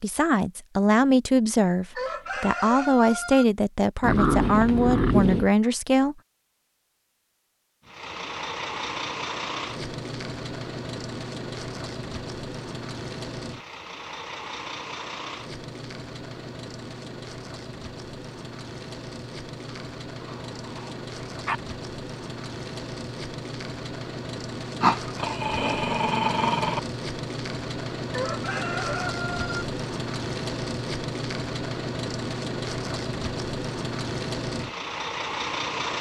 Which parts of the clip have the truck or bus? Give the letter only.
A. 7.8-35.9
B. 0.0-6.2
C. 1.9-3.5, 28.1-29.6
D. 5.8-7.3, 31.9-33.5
A.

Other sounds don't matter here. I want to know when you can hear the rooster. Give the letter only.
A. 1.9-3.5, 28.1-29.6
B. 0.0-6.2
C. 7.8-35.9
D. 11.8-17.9
A.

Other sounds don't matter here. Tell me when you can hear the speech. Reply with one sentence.
The speech can be heard from 0.0 to 6.2 s.